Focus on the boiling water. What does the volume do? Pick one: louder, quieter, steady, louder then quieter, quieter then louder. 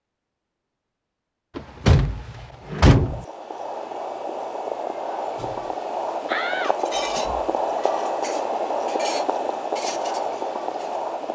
louder.